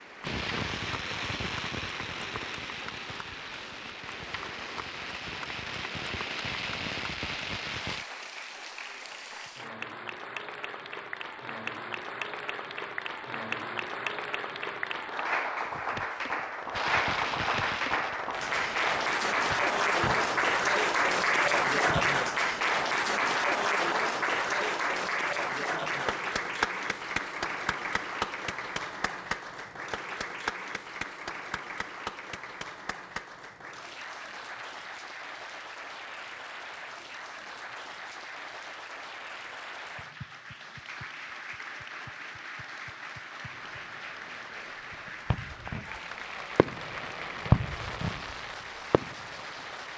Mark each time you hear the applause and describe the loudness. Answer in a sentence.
You can hear the applause from 0.0 to 49.9 s, getting louder then quieter.